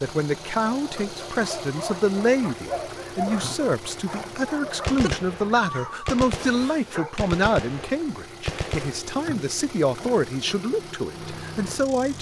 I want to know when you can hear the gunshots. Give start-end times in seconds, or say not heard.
4.8-9.0.